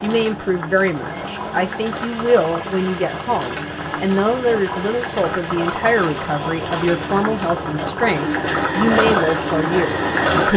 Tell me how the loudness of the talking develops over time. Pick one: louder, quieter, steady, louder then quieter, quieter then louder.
steady.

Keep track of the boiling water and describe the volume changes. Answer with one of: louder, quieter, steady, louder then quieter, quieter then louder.
louder.